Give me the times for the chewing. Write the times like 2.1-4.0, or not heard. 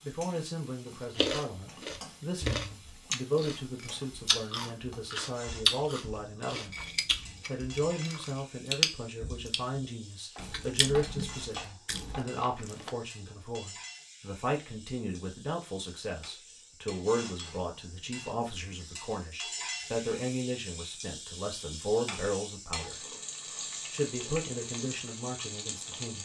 1.1-12.9.